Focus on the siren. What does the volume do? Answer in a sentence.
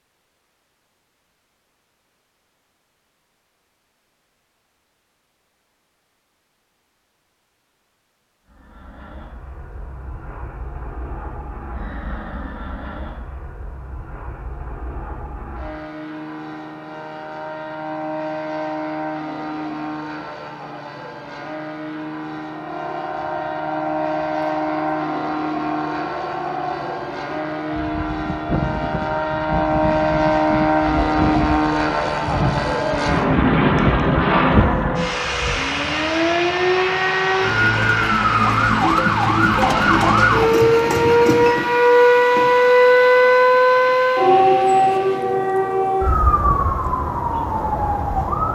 The volume of the siren goes up.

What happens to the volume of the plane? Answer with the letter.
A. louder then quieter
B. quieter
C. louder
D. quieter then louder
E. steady
A.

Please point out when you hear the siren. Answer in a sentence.
The siren can be heard from 22.4 to 48.5 s.